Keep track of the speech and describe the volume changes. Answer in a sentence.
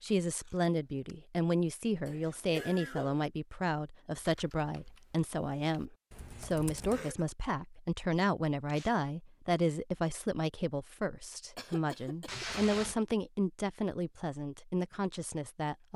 The loudness of the speech stays about the same.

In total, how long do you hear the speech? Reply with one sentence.
The speech can be heard for 16 seconds in total.